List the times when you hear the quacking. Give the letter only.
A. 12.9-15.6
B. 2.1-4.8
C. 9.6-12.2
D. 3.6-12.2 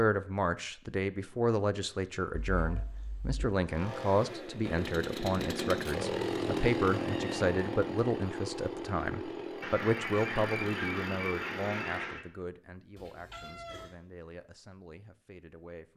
C.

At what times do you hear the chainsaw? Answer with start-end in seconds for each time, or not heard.
3.6-12.2.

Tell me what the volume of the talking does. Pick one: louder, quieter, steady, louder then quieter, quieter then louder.
quieter.